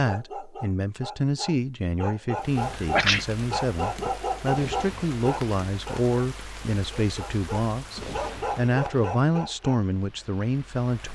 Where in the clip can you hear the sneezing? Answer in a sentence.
You can hear the sneezing from 2.8 to 4.1 s.